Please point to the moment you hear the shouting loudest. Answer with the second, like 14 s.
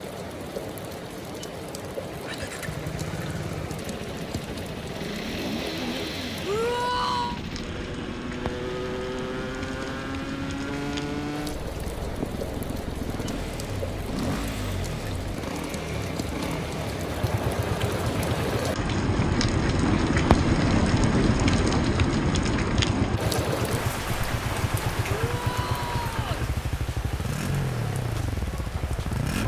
7 s.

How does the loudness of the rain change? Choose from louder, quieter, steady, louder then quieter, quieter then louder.
louder then quieter.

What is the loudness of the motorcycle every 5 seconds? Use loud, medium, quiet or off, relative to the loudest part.
medium, loud, loud, loud, loud, loud.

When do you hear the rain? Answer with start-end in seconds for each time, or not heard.
0.0-29.4.